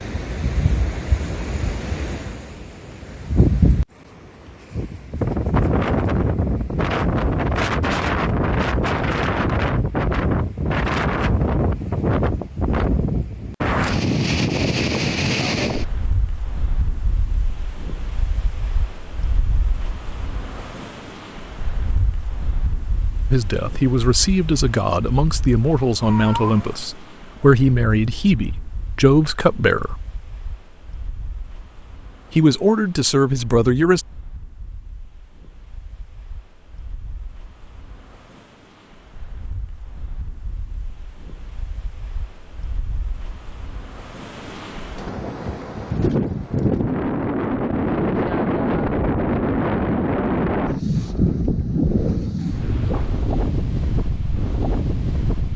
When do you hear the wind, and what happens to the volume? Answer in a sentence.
The wind can be heard from 0.0 to 55.5 s, getting quieter then louder.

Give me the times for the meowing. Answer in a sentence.
You can hear the meowing from 26.0 to 26.9 s.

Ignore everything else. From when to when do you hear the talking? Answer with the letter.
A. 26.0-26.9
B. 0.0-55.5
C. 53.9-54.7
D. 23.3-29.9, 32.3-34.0
D.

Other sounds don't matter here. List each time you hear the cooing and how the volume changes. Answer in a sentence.
You can't hear the cooing here.